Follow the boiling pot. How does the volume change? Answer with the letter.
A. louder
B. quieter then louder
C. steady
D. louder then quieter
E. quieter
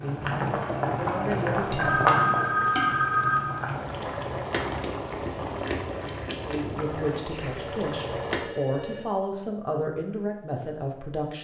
E.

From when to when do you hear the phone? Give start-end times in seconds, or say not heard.
1.8-3.5, 7.5-9.0.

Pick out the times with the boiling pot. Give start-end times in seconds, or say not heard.
0.0-8.4.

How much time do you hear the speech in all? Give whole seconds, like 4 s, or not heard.
7 s.